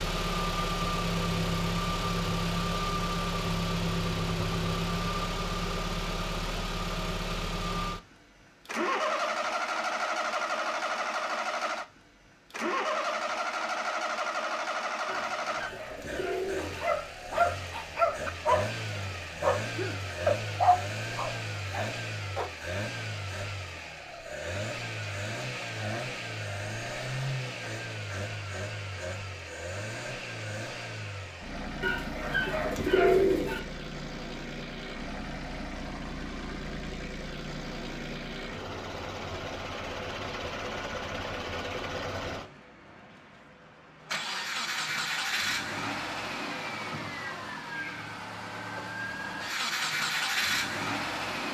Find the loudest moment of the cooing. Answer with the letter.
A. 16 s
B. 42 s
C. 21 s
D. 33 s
D.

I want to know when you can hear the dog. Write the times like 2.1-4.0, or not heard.
16.6-22.5.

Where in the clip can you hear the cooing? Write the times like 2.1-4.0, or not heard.
15.1-16.9, 31.8-33.6.